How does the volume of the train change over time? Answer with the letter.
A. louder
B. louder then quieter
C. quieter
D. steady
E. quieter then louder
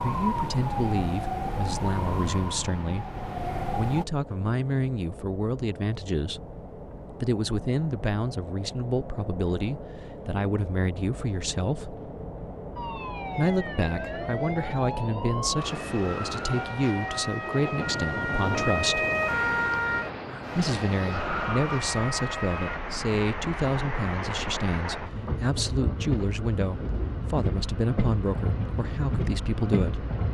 A.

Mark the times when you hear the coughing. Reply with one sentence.
You can't hear the coughing here.